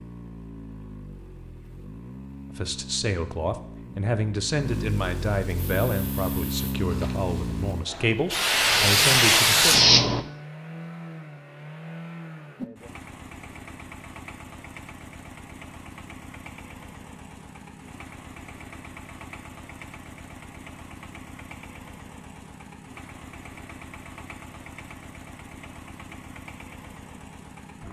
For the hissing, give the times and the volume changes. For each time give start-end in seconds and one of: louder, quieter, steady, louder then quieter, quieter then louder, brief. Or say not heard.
5.8-10.2 louder.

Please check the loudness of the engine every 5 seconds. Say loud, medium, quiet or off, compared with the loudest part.
medium, loud, medium, quiet, quiet, quiet.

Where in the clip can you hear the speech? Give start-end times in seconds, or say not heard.
2.5-9.8.